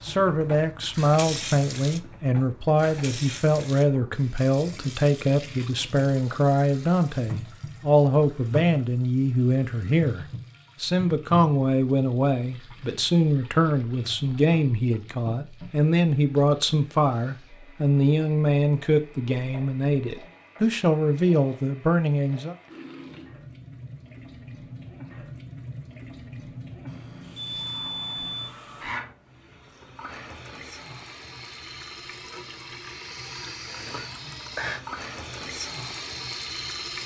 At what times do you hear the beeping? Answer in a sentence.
You can hear the beeping from 26.9 to 28.6 s.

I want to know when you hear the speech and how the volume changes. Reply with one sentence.
The speech can be heard from 0.0 to 22.6 s, at a steady volume.